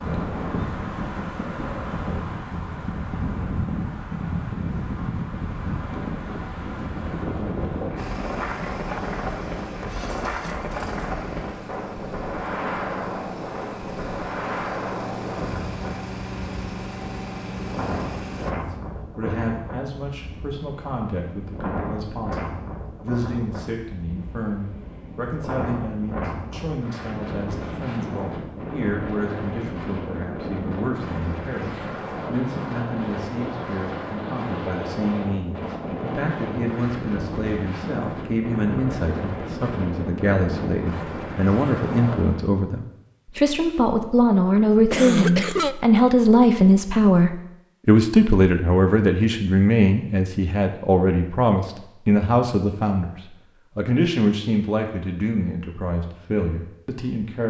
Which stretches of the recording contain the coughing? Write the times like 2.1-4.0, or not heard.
44.9-45.8.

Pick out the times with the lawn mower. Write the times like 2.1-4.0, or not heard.
8.0-18.6.